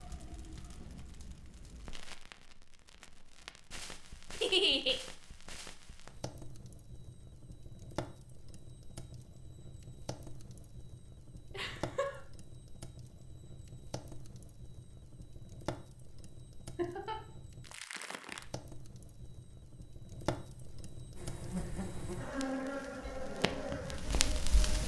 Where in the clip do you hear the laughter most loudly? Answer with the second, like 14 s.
5 s.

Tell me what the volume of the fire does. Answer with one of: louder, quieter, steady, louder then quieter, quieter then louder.
louder.